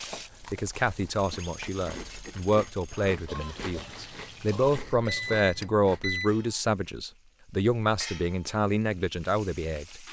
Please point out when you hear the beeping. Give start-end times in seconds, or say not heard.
1.1-3.1, 5.0-6.3.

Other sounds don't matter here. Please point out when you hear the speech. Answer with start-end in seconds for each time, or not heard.
0.4-10.0.